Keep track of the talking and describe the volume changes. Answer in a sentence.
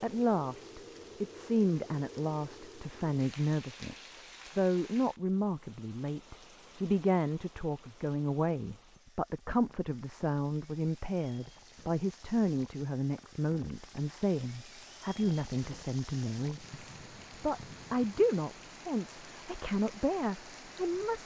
The volume of the talking stays about the same.